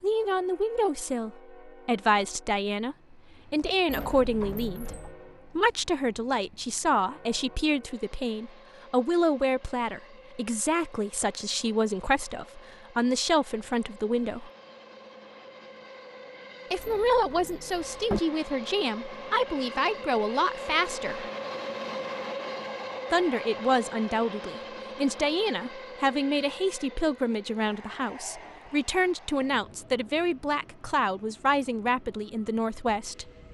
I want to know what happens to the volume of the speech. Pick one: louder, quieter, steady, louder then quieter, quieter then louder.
steady.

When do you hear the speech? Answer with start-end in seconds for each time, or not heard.
0.0-14.5, 16.7-21.2, 23.1-33.2.